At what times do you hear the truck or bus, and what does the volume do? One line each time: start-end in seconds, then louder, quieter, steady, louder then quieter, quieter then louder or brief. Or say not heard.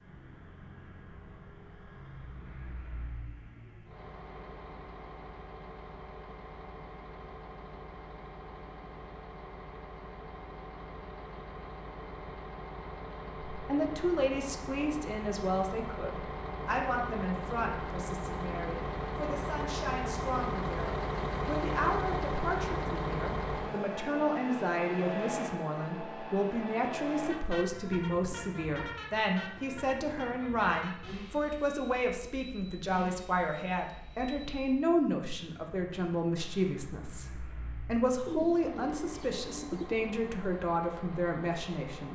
0.0-42.1 louder then quieter.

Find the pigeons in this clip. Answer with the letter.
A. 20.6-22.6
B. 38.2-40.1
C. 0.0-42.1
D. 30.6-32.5
B.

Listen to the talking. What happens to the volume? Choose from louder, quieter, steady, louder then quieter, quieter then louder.
steady.